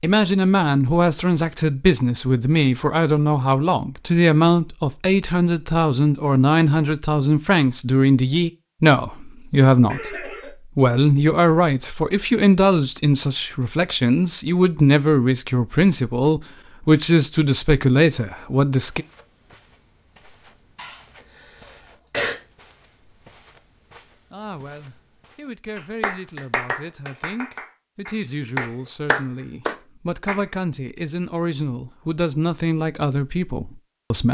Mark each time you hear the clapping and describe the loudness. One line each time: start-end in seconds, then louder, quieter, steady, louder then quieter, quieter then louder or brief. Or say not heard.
25.8-30.4 quieter then louder.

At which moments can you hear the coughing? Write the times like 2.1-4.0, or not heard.
9.9-10.5, 20.8-22.4.